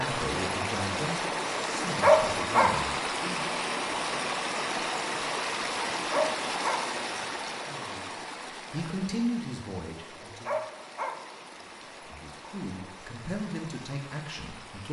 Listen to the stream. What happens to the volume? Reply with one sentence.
The volume of the stream goes down.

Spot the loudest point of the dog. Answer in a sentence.
The volume of the dog peaks at 2 seconds.